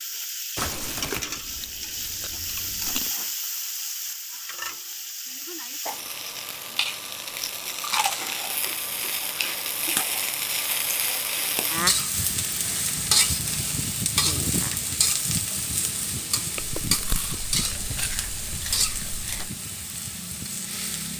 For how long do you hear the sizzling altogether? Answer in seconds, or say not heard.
21 s.